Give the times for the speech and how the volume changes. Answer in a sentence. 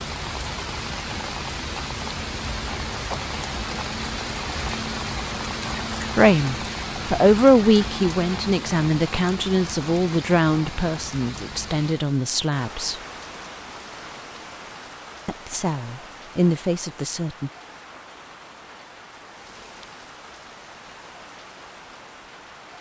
You can hear the speech from 6.2 to 13.0 s, getting quieter; and briefly from 15.2 to 17.5 s.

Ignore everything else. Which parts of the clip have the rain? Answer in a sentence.
You can hear the rain from 0.0 to 22.7 s.